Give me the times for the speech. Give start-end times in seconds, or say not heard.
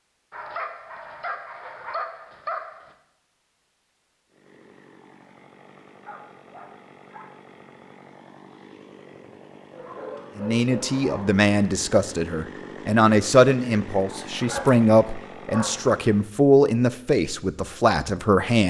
10.3-18.6.